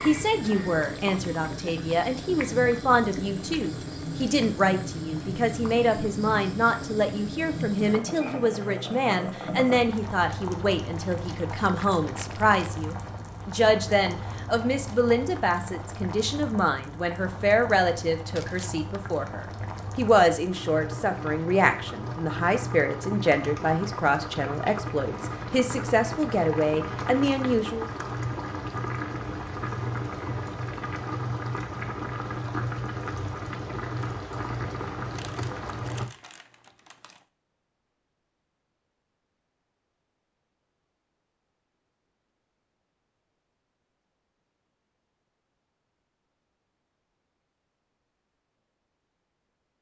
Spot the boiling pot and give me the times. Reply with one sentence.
The boiling pot can be heard from 0.0 to 36.1 s.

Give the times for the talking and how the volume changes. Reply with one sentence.
The talking can be heard from 0.0 to 27.9 s, at a steady volume.